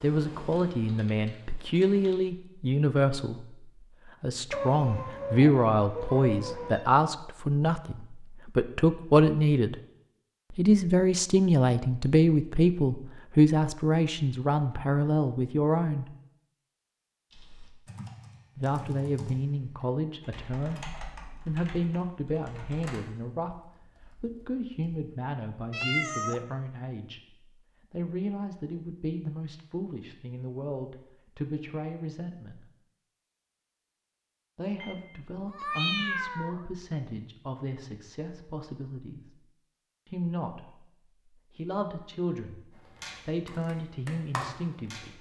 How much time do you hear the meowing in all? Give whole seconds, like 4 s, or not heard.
5 s.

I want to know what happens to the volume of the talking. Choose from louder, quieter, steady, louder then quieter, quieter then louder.
quieter.